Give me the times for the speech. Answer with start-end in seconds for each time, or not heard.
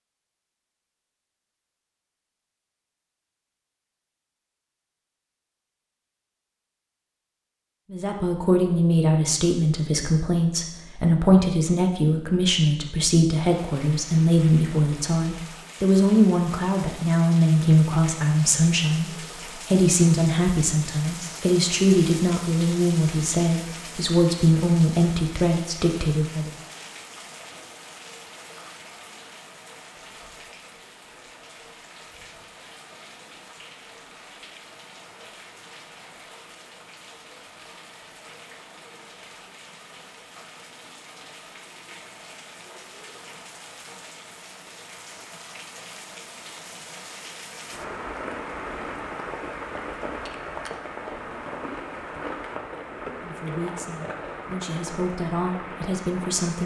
7.9-26.5, 53.2-56.6.